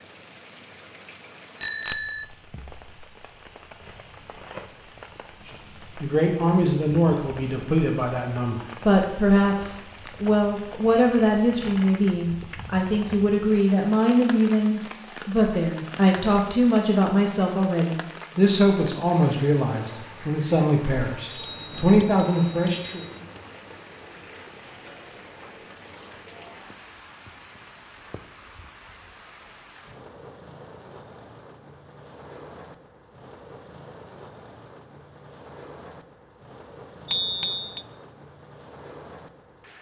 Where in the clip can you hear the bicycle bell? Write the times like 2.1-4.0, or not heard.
1.6-2.2, 21.3-23.2, 37.1-37.9.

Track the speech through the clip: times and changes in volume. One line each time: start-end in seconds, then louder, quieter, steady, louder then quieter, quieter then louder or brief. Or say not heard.
5.5-23.1 steady.